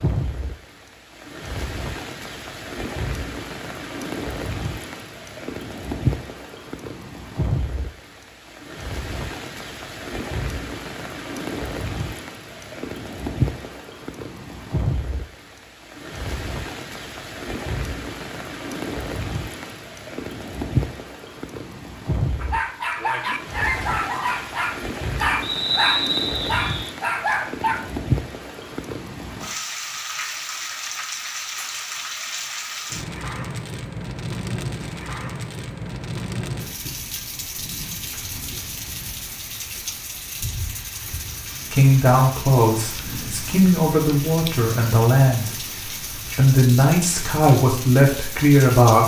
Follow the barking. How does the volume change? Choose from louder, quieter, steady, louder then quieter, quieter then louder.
steady.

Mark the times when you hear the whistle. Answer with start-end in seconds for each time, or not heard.
25.4-26.9.